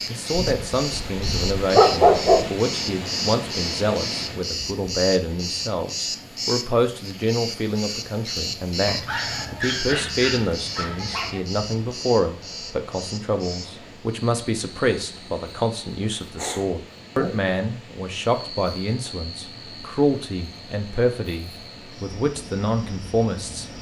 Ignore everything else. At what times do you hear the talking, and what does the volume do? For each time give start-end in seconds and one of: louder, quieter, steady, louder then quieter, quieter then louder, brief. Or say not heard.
0.1-23.6 steady.